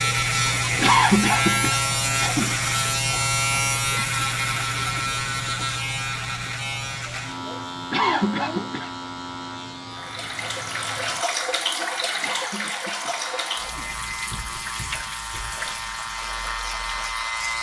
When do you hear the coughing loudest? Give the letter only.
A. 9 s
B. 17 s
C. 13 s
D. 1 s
D.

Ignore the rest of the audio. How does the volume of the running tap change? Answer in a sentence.
The volume of the running tap goes down.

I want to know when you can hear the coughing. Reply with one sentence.
The coughing can be heard from 0.8 to 2.5 s, from 7.9 to 8.9 s and from 12.2 to 13.9 s.